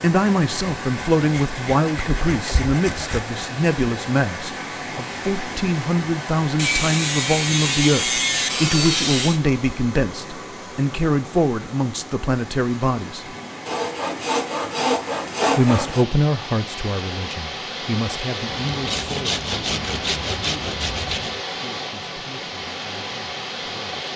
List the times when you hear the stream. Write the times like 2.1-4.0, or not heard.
0.0-24.1.